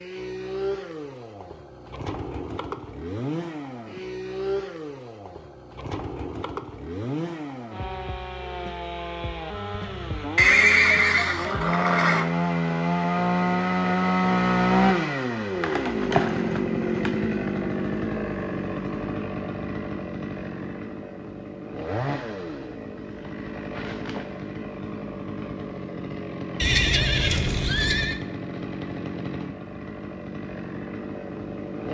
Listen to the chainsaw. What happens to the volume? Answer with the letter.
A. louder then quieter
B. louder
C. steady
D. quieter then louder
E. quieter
A.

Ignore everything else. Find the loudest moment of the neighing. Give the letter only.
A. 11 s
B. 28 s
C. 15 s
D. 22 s
A.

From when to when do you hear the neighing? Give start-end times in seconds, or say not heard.
10.3-12.2, 26.6-28.2.